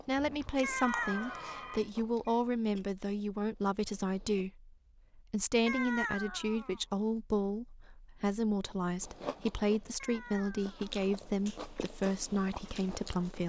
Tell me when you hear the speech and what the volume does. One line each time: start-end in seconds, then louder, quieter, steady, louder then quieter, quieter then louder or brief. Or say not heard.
0.1-13.4 steady.